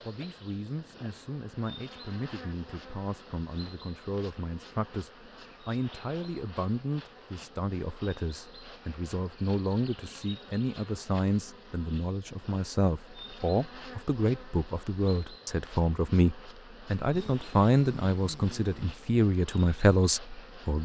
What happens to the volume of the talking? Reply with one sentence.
The loudness of the talking goes up.